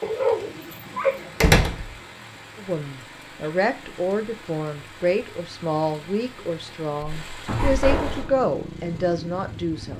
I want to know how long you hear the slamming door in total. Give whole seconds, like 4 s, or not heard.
2 s.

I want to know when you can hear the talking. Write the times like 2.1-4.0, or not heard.
2.5-9.9.